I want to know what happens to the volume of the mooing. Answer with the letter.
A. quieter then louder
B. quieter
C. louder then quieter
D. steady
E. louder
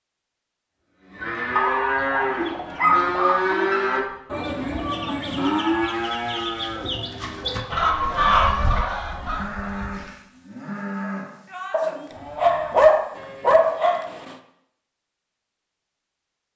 B.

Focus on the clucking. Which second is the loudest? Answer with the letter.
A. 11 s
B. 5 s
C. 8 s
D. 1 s
C.